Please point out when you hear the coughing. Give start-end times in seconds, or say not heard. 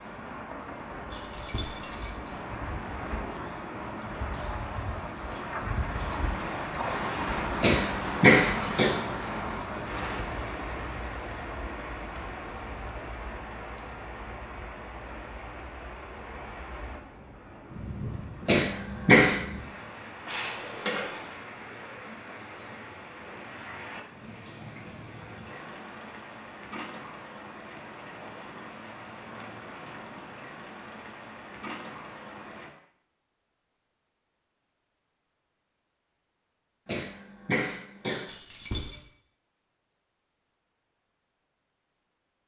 7.6-8.9, 18.4-19.4, 36.9-38.2.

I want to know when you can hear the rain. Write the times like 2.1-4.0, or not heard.
0.0-32.8.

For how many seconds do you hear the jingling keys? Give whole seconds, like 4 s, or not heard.
3 s.